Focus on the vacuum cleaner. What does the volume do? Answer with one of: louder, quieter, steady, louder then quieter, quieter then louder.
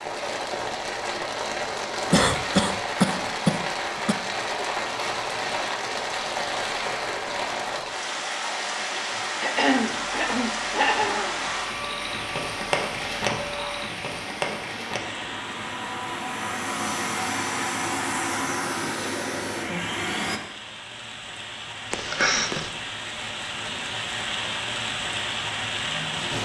louder.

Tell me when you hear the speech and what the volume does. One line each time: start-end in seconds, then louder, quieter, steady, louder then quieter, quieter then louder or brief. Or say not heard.
not heard.